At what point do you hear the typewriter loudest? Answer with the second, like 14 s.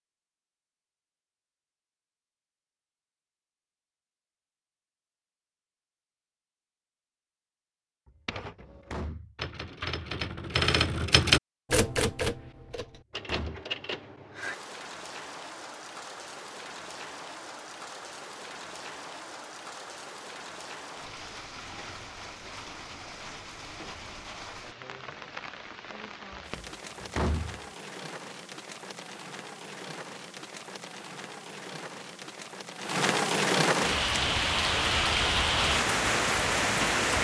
11 s.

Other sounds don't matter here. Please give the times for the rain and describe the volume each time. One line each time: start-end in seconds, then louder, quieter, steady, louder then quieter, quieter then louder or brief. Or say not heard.
14.3-37.1 louder.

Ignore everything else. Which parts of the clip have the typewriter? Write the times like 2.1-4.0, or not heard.
8.2-14.6.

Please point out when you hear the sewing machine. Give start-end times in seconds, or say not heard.
not heard.